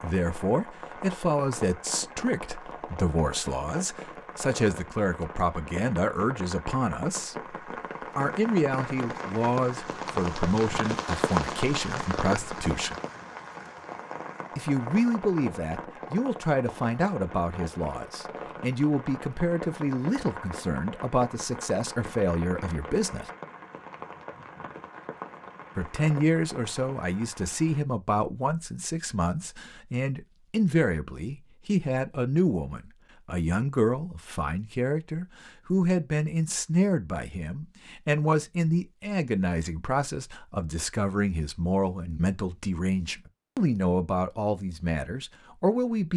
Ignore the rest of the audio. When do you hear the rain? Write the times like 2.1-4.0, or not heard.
0.0-27.8.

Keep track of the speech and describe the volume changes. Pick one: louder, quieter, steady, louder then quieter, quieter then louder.
steady.